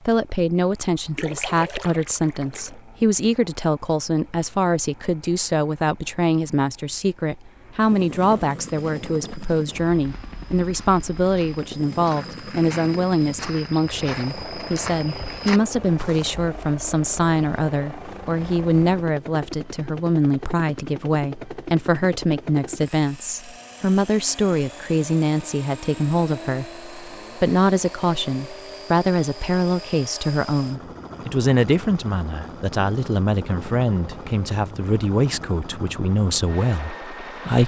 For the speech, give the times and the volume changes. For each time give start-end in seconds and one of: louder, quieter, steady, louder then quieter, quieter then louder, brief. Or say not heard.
0.1-37.6 steady.